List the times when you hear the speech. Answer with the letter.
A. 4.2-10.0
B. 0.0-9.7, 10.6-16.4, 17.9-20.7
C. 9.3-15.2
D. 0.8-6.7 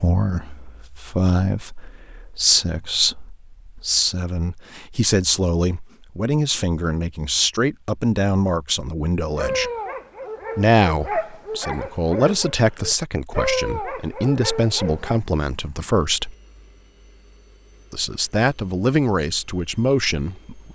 B.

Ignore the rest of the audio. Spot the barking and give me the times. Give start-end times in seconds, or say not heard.
9.3-15.2.